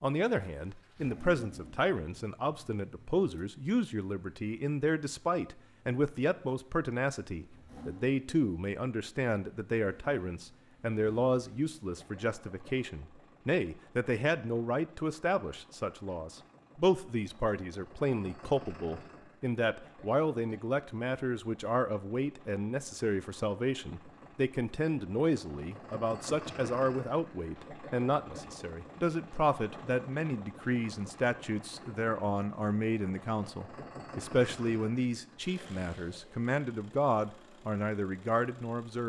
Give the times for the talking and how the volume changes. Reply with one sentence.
You can hear the talking from 0.0 to 39.0 s, at a steady volume.